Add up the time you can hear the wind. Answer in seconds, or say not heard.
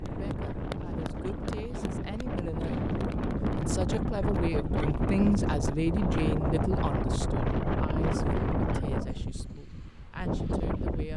11 s.